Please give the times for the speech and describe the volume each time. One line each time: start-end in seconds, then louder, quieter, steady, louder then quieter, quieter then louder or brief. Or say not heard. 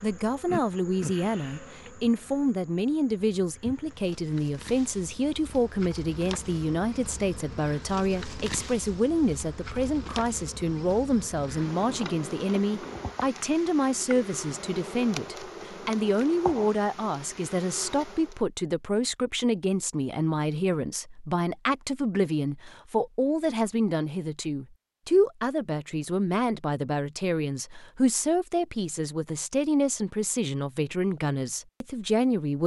0.0-32.6 steady.